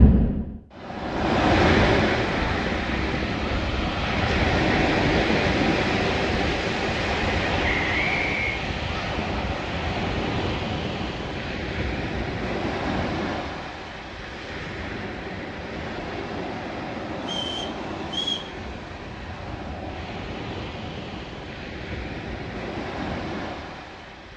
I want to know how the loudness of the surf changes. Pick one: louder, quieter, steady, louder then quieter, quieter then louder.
quieter.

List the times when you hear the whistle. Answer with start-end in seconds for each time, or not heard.
7.7-8.6, 17.2-18.5.